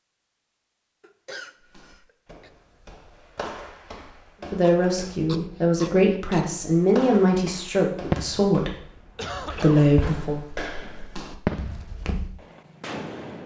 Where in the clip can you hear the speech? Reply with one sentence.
You can hear the speech from 4.5 to 8.8 s and from 9.6 to 10.4 s.